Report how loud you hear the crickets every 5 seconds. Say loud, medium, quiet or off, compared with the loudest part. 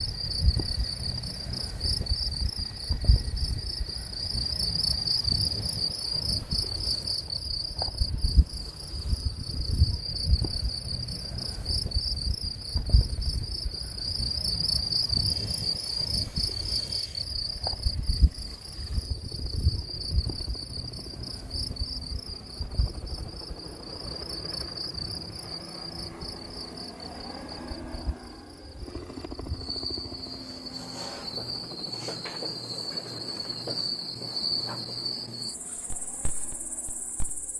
loud, loud, loud, loud, medium, medium, loud, medium.